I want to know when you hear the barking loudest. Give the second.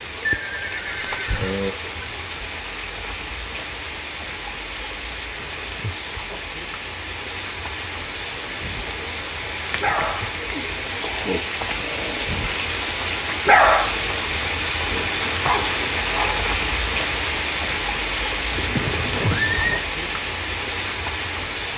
14 s.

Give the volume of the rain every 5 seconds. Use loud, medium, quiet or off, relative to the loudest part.
medium, medium, loud, loud, loud.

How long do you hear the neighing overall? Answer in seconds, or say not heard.
3 s.